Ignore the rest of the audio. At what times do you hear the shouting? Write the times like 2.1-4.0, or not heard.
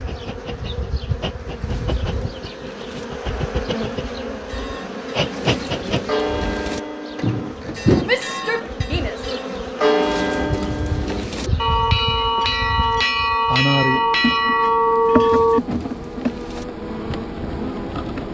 8.1-9.2.